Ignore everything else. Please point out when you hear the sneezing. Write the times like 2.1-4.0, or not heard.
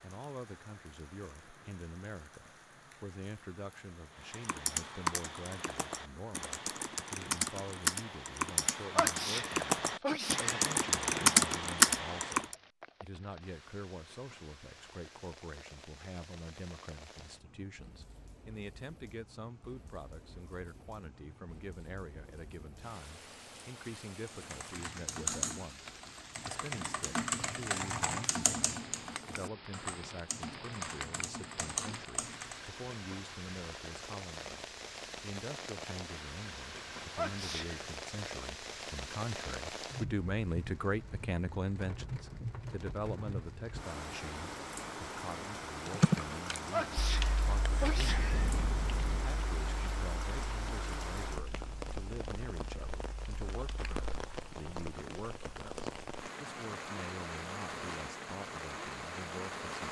8.9-10.6, 37.1-37.8, 46.7-48.5.